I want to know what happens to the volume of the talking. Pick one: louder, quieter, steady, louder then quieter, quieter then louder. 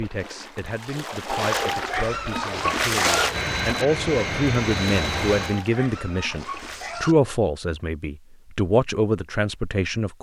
louder.